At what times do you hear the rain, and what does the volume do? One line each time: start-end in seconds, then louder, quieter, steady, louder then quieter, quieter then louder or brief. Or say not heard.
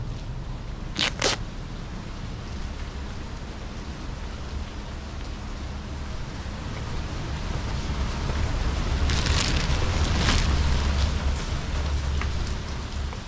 0.0-13.2 louder.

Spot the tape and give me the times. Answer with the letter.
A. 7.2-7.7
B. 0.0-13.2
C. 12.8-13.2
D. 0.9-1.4
D.